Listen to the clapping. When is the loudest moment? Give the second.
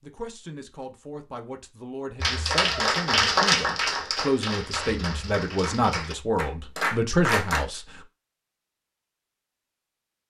3 s.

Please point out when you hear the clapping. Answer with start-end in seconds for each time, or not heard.
2.2-7.7.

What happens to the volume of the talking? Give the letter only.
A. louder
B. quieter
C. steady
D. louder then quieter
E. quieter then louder
A.